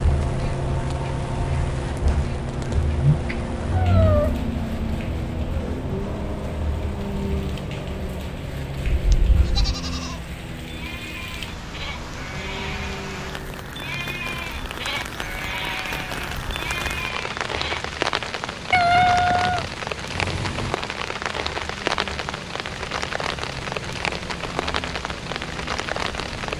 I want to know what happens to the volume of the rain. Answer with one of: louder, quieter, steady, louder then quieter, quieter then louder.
louder.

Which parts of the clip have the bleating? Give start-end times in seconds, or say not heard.
9.4-17.9.